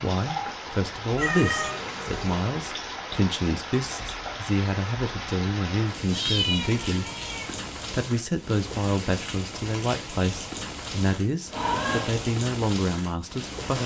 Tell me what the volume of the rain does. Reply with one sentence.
The volume of the rain stays about the same.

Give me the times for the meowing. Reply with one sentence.
The meowing can be heard from 1.1 to 2.5 s, from 6.1 to 7.5 s and from 11.5 to 12.2 s.